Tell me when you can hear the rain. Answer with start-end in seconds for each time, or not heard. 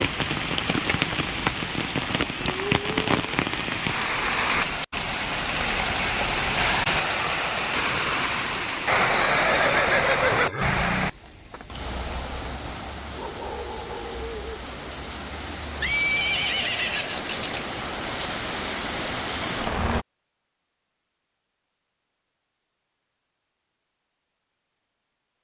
0.0-20.1.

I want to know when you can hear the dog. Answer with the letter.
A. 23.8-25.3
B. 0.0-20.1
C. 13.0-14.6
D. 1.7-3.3
C.